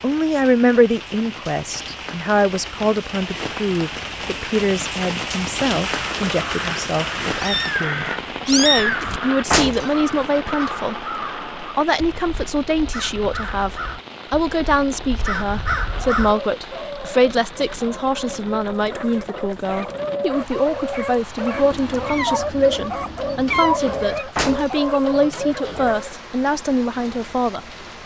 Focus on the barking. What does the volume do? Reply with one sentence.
The volume of the barking goes up.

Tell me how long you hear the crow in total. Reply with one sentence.
The crow can be heard for 10 seconds in total.